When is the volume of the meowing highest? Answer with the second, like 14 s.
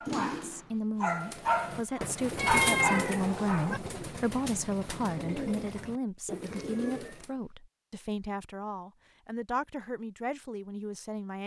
3 s.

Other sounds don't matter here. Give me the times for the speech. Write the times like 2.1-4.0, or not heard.
0.1-11.4.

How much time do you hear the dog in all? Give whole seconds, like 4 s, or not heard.
4 s.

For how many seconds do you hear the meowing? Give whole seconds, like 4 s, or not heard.
2 s.